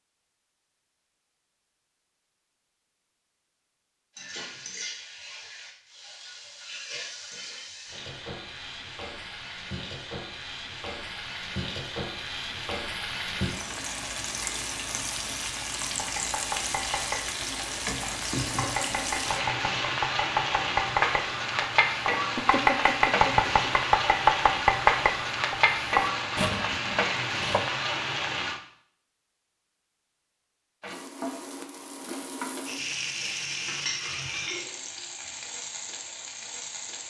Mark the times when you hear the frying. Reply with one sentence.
The frying can be heard from 4.2 to 28.6 s and from 30.8 to 37.0 s.